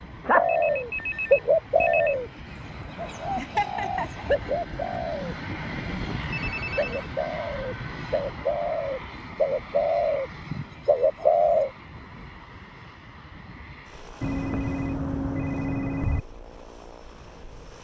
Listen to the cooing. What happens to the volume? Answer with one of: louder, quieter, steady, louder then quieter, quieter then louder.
quieter then louder.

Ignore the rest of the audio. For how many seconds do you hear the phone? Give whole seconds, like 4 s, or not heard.
5 s.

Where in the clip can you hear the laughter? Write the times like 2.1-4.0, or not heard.
3.4-4.5.